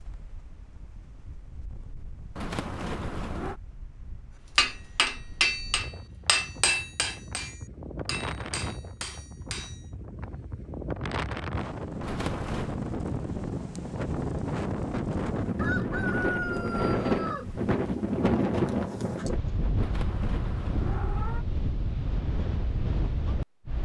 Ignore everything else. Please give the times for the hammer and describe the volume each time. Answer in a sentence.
You can hear the hammer from 4.5 to 9.8 s, getting quieter.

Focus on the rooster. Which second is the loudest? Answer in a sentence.
The volume of the rooster peaks at 16 seconds.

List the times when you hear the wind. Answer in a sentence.
You can hear the wind from 0.0 to 23.8 s.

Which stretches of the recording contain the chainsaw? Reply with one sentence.
You can't hear the chainsaw here.